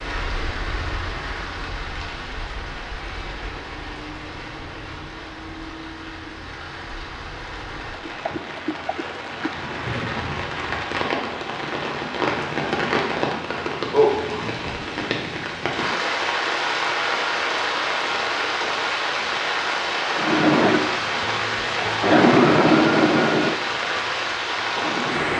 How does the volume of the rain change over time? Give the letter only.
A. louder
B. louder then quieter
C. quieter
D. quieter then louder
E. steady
A.